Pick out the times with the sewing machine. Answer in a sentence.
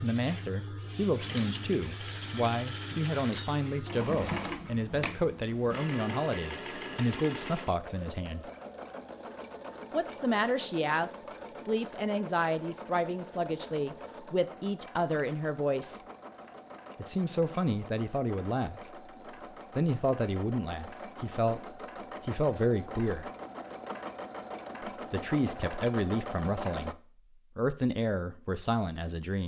The sewing machine can be heard from 0.0 to 26.9 s.